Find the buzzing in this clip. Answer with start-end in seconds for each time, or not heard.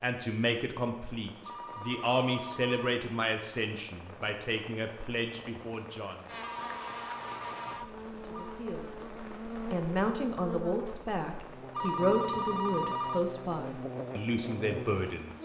6.2-15.3.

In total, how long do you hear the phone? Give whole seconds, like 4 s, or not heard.
5 s.